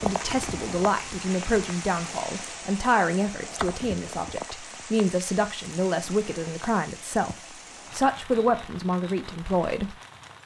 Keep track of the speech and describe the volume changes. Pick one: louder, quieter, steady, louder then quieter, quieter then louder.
steady.